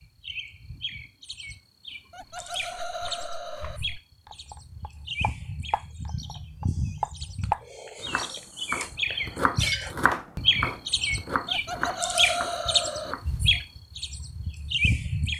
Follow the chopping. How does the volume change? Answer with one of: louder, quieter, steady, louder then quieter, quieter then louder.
louder then quieter.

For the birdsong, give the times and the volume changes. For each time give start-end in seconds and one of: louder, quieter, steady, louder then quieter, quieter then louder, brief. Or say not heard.
0.0-15.3 louder.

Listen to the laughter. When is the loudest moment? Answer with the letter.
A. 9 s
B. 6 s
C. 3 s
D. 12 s
D.